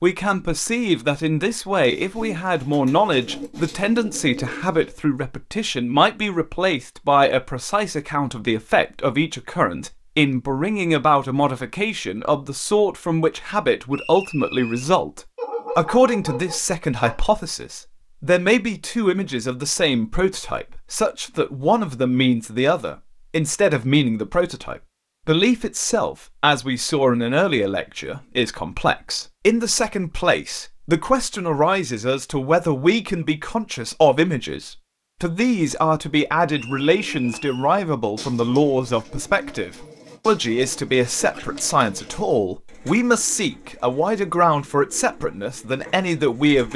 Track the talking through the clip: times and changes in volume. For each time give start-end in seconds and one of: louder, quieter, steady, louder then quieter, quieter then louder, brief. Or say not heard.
0.0-46.7 steady.